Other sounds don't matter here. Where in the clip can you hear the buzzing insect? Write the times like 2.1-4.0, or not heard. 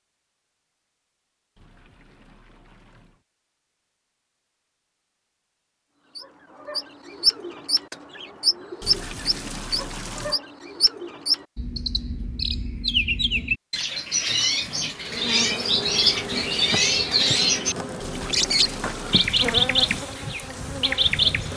14.9-21.5.